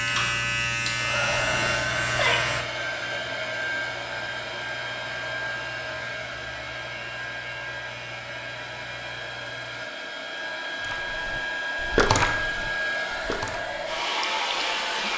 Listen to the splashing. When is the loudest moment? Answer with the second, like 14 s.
12 s.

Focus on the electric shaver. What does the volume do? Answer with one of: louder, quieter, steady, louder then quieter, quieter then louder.
quieter.